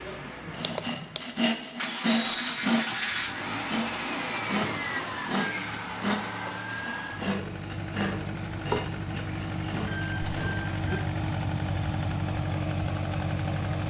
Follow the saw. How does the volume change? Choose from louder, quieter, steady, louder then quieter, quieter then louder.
quieter.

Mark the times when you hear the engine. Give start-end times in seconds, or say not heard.
0.0-13.8.